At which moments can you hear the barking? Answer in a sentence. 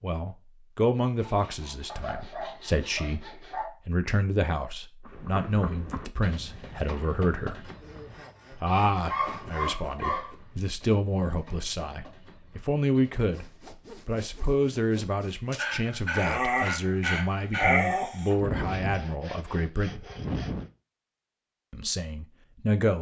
You can hear the barking from 1.9 to 3.7 s, from 8.7 to 10.3 s and from 15.5 to 18.4 s.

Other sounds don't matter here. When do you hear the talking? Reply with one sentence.
The talking can be heard from 0.0 to 7.7 s, from 8.5 to 20.1 s and from 21.7 to 22.9 s.